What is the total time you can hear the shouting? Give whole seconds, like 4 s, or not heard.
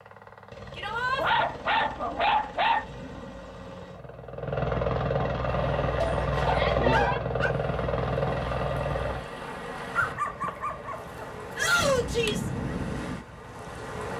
2 s.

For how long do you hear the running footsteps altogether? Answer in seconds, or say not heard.
not heard.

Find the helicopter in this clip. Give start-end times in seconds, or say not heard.
0.0-9.2.